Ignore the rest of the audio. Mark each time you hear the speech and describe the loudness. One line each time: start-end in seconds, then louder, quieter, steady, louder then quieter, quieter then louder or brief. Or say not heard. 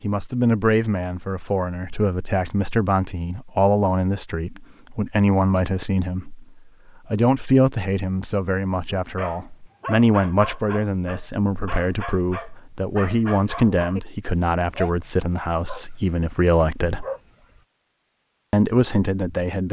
0.0-17.1 steady
18.5-19.6 brief.